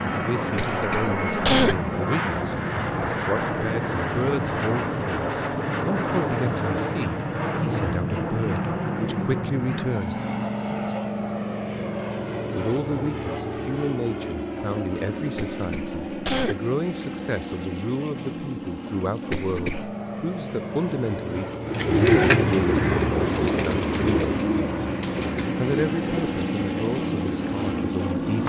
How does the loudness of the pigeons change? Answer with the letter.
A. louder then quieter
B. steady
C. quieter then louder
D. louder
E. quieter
E.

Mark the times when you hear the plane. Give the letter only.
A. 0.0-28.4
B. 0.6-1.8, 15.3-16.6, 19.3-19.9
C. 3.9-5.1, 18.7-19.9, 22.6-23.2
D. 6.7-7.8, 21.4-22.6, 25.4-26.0
A.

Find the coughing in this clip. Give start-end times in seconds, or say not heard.
0.6-1.8, 15.3-16.6, 19.3-19.9.